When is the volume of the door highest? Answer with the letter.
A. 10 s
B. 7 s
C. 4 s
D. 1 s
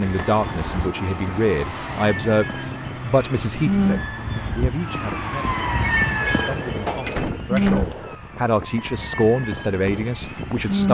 B.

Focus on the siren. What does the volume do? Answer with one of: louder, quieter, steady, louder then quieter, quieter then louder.
louder then quieter.